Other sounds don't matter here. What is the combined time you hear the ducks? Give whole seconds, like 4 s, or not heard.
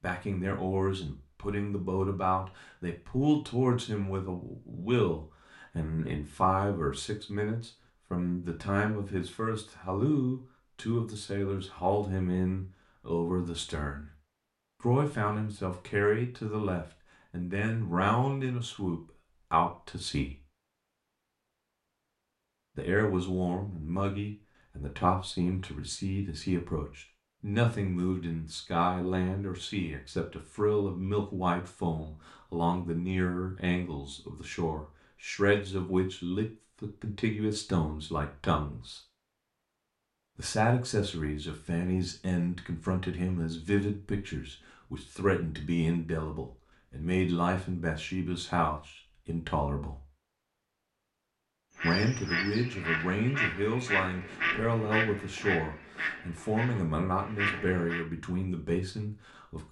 6 s.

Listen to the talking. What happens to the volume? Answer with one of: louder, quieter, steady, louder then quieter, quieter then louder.
steady.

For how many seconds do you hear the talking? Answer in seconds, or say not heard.
53 s.